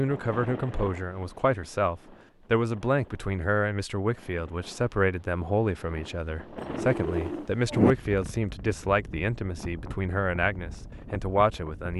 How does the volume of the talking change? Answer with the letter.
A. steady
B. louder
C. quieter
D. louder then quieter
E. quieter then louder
A.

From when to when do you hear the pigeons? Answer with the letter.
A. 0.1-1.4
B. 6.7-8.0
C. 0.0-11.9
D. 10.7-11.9
B.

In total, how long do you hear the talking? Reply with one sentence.
The talking can be heard for 12 seconds in total.